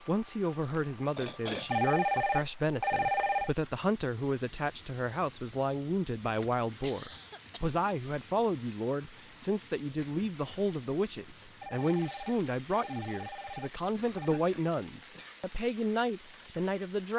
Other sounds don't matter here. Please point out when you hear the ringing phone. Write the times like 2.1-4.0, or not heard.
1.7-3.5, 11.6-14.4.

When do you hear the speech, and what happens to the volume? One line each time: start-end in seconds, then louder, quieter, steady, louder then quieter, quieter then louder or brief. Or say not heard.
0.1-17.1 steady.